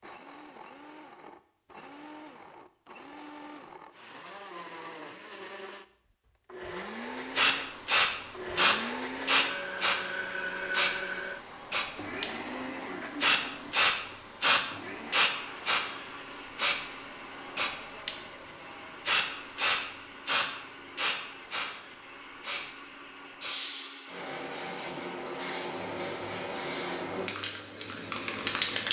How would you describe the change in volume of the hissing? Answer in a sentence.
The loudness of the hissing goes down.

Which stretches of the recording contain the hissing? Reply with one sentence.
You can hear the hissing from 7.3 to 28.8 s.